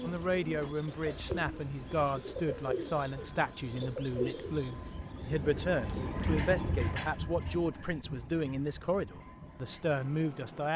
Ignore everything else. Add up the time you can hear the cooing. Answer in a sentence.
The cooing can be heard for 6 seconds in total.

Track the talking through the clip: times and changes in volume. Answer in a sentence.
The talking can be heard from 0.0 to 10.7 s, at a steady volume.